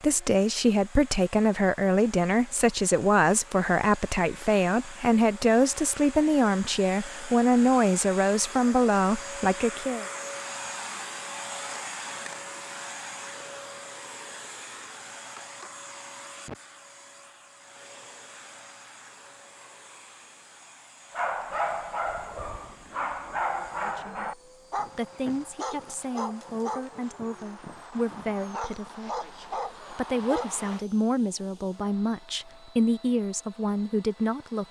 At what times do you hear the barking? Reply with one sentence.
You can hear the barking from 21.1 to 30.9 s.